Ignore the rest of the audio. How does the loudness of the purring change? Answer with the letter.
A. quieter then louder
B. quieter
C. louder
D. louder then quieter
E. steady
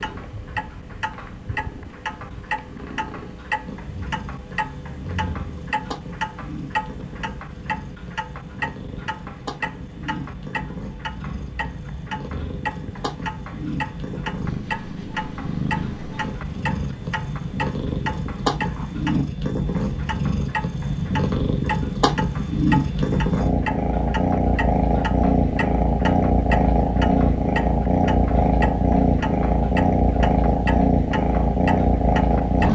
C.